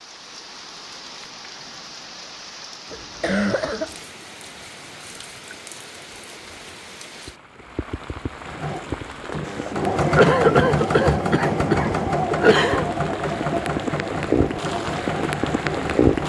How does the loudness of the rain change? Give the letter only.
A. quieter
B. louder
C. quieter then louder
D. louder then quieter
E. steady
B.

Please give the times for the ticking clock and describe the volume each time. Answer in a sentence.
You can't hear the ticking clock here.